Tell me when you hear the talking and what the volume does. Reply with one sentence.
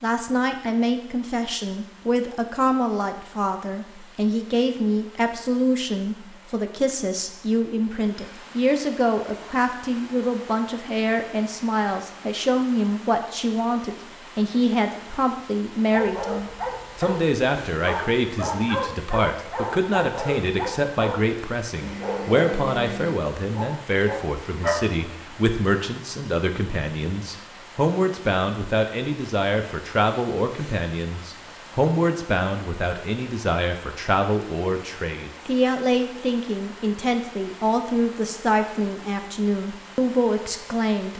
You can hear the talking from 0.0 to 41.1 s, at a steady volume.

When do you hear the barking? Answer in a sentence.
You can hear the barking from 15.9 to 24.8 s.